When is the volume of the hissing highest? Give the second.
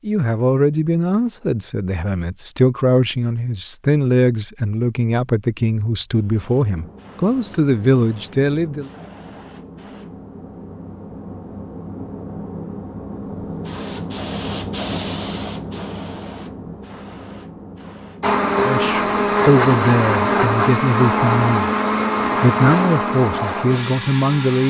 15 s.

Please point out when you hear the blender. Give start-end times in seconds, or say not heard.
18.2-24.6.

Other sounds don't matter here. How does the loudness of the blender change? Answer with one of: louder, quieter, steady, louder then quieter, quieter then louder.
quieter.